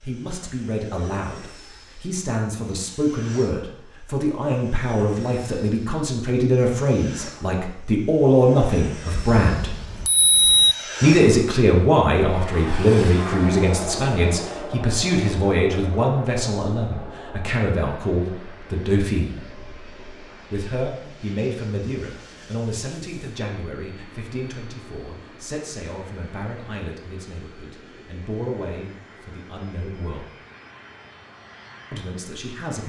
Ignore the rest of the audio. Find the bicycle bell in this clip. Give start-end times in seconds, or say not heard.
9.2-10.8.